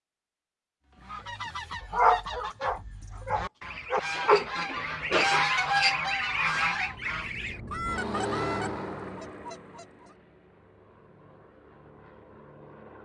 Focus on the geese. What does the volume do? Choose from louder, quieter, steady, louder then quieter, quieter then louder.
louder then quieter.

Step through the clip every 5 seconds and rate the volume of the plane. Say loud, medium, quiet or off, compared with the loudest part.
off, loud, quiet.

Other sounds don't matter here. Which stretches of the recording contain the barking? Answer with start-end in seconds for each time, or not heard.
1.9-5.5.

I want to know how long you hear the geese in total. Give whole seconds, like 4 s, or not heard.
9 s.